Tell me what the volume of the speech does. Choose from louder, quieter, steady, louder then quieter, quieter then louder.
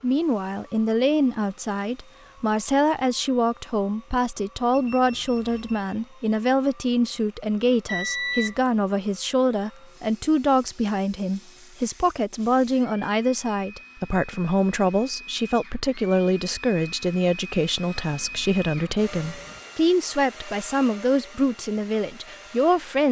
steady.